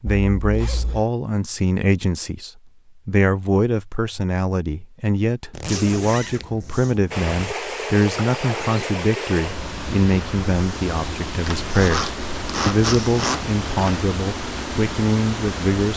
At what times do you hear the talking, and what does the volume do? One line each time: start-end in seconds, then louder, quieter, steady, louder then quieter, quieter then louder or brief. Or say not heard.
0.0-15.9 steady.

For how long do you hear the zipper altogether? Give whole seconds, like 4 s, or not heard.
6 s.